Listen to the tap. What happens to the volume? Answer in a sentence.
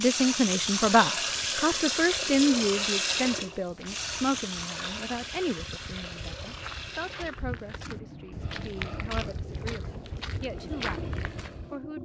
The loudness of the tap goes down.